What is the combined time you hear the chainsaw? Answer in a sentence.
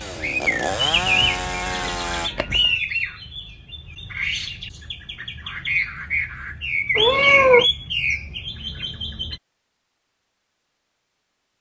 You can hear the chainsaw for 2 seconds altogether.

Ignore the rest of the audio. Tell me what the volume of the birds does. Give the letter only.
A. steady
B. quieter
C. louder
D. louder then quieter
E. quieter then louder
E.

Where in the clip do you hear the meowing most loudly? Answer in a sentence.
The volume of the meowing peaks at 7 seconds.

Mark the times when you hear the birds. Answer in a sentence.
You can hear the birds from 0.0 to 9.4 s.